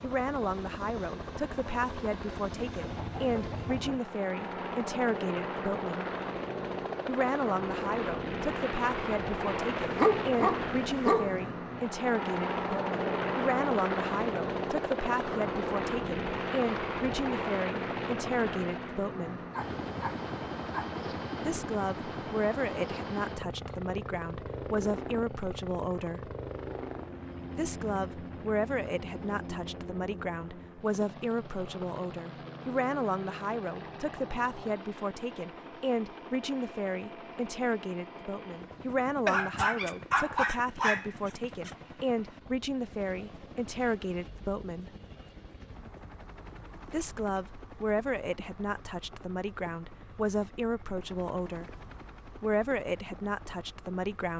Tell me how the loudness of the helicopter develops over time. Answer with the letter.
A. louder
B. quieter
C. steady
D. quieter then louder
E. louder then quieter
B.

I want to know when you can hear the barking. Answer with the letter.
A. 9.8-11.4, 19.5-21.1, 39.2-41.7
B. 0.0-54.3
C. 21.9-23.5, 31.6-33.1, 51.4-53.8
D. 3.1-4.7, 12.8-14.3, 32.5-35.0
A.